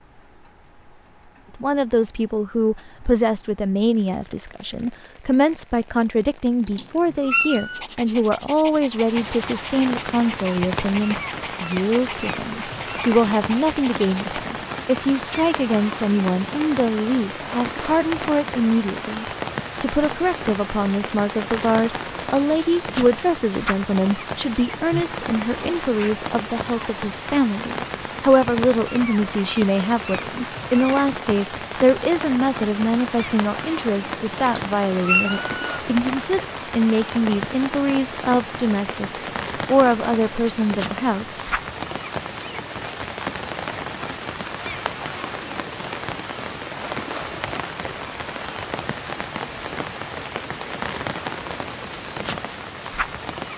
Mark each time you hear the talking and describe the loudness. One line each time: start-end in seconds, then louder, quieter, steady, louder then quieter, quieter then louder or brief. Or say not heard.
1.6-41.5 steady.